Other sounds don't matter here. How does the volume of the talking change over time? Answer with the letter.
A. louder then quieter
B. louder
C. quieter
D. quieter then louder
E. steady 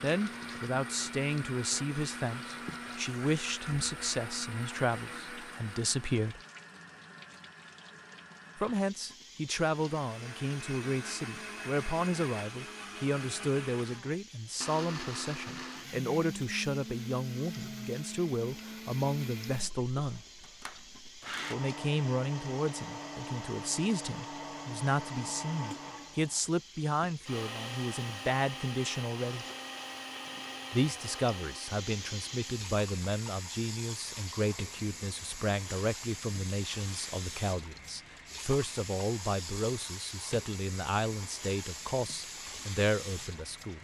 E.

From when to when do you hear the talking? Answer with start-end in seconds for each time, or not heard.
0.0-6.4, 8.6-20.2, 21.5-29.4, 30.7-43.7.